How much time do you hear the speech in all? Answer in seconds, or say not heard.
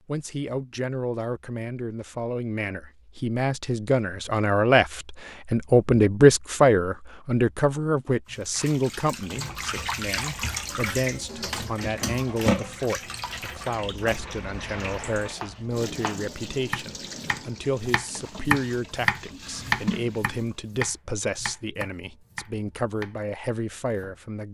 24 s.